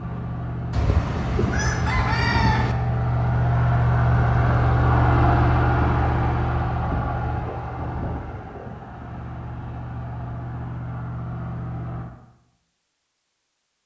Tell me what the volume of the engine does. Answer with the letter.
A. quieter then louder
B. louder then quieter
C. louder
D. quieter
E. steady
B.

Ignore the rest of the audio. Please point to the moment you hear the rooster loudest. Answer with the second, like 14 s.
2 s.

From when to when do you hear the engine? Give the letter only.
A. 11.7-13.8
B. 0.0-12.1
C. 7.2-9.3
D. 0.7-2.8
B.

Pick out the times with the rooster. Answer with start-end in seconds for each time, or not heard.
0.7-2.8.